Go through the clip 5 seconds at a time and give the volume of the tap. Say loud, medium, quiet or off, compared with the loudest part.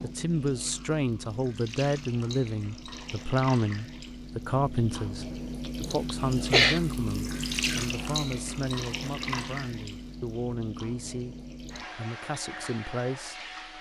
medium, loud, medium.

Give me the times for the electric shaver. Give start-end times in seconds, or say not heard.
not heard.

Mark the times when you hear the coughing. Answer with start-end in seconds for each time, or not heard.
6.0-6.8.